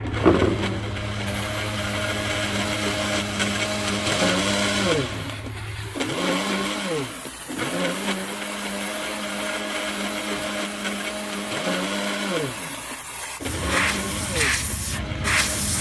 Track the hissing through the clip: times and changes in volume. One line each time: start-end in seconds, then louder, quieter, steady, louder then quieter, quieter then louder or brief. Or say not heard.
0.0-15.7 quieter then louder.